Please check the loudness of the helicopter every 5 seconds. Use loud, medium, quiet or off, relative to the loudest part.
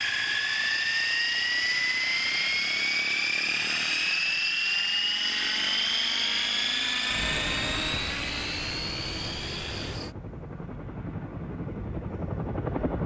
loud, loud, medium.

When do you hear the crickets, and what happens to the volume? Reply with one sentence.
The crickets can be heard from 0.1 to 10.2 s, at a steady volume.